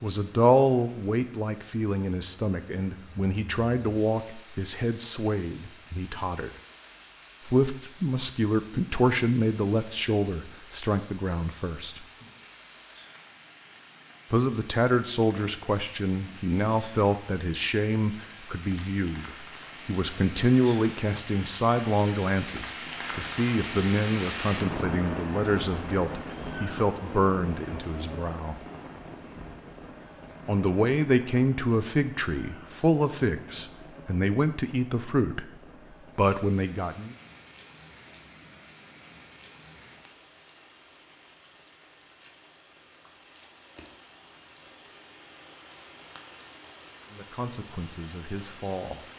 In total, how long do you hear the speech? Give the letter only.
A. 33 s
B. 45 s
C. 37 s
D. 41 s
A.